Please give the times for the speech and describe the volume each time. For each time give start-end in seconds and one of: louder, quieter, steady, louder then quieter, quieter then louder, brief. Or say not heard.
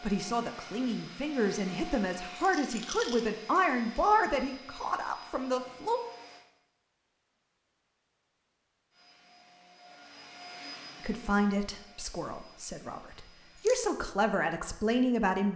0.0-6.0 louder then quieter
11.0-15.5 quieter then louder.